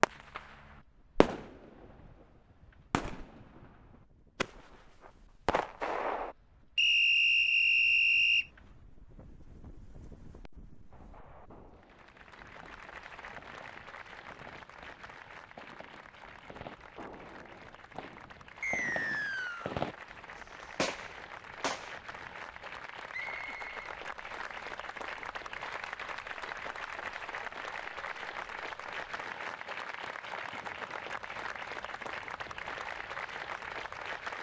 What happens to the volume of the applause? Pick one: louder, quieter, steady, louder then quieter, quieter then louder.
louder.